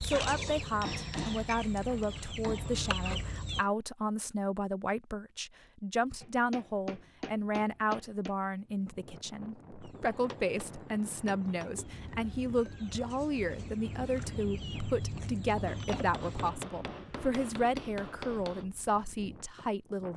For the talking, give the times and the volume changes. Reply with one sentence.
The talking can be heard from 0.0 to 20.1 s, at a steady volume.